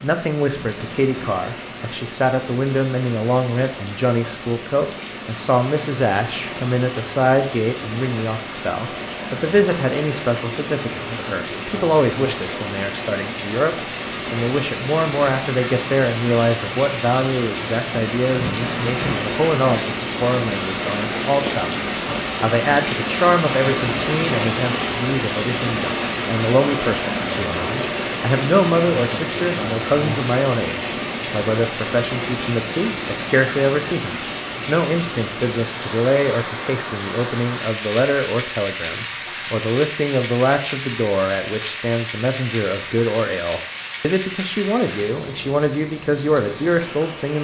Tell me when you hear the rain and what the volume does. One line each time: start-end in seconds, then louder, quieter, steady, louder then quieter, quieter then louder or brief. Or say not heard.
0.0-47.3 louder then quieter.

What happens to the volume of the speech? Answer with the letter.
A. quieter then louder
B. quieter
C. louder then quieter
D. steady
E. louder
D.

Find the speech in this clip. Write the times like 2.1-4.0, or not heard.
0.0-47.3.